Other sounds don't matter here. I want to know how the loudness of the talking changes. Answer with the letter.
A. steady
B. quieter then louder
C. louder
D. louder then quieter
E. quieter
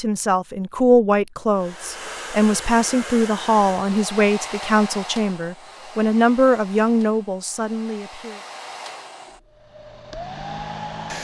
A.